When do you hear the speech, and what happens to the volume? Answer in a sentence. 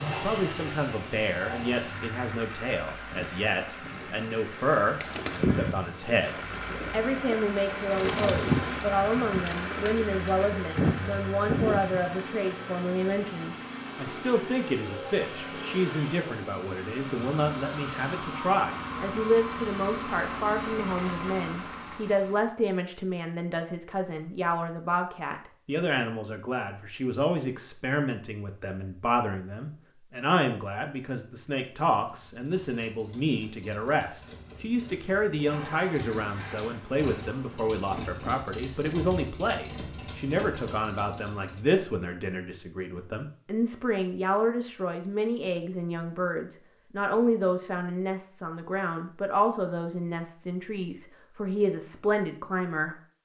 You can hear the speech from 0.1 to 53.0 s, at a steady volume.